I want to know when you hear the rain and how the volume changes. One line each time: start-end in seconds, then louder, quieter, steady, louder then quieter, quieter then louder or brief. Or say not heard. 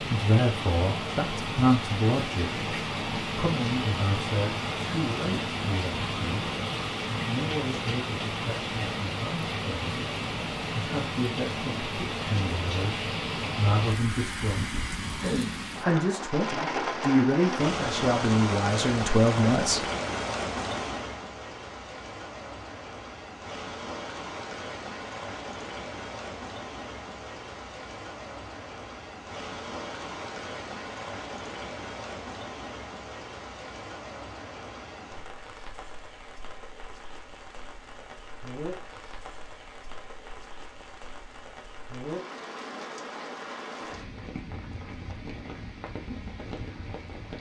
0.0-47.3 quieter.